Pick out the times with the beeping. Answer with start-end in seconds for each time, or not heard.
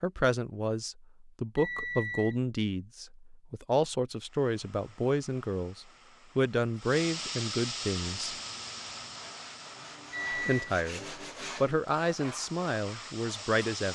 1.6-2.4, 10.1-10.6.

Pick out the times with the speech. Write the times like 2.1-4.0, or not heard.
0.0-8.3, 10.3-13.9.